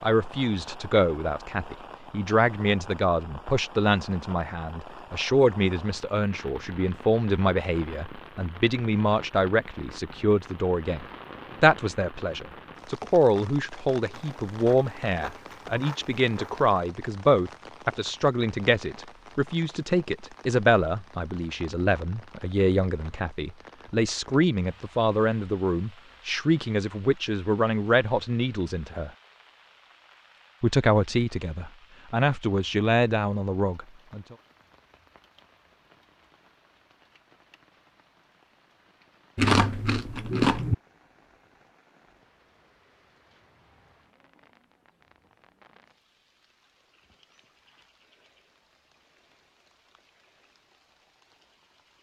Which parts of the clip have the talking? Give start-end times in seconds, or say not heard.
0.0-29.1, 30.6-34.4.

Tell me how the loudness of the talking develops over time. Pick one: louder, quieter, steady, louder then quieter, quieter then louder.
steady.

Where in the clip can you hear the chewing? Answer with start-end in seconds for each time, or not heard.
14.1-16.7, 39.4-40.8.